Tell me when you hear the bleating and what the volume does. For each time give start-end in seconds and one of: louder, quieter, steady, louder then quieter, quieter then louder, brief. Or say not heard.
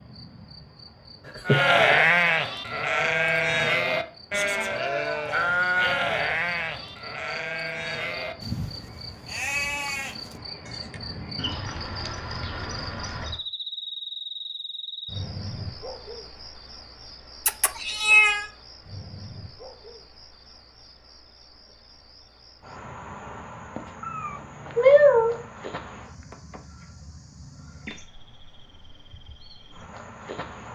1.4-11.0 quieter.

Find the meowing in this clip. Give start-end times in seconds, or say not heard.
1.2-2.0, 17.4-18.4, 24.0-25.4.